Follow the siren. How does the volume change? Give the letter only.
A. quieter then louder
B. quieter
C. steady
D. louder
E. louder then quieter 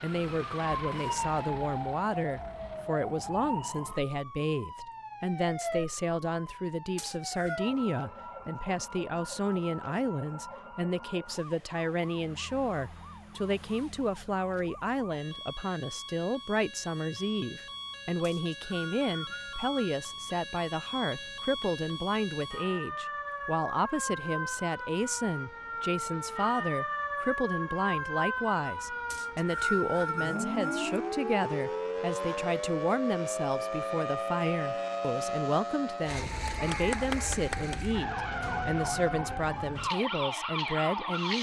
A.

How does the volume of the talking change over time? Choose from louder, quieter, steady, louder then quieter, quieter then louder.
steady.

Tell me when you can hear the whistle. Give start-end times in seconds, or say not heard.
7.0-7.6, 18.2-19.9, 29.1-30.9.